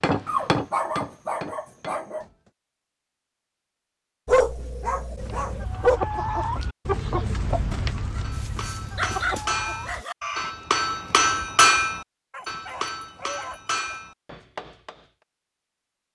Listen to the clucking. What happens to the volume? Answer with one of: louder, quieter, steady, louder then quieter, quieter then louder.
quieter.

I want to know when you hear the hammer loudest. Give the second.
12 s.